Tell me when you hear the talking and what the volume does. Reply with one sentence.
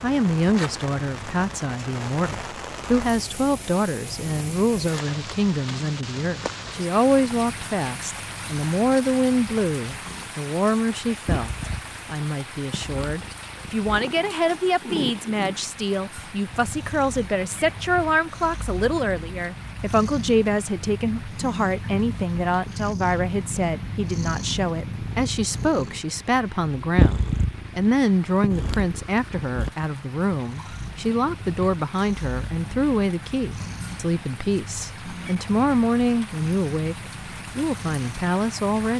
The talking can be heard from 0.0 to 38.9 s, at a steady volume.